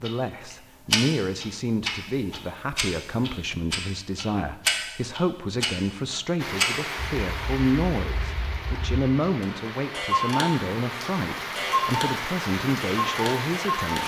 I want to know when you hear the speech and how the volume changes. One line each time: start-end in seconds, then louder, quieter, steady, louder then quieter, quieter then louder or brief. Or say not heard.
0.0-14.0 steady.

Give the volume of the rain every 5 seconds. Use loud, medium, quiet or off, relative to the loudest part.
off, loud, loud.